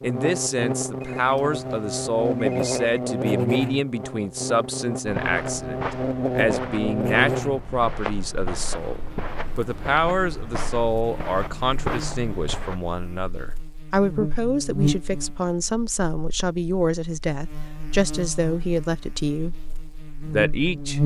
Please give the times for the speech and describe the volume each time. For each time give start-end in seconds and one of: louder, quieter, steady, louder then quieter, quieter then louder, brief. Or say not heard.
0.0-21.0 steady.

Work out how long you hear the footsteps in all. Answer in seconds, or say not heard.
8 s.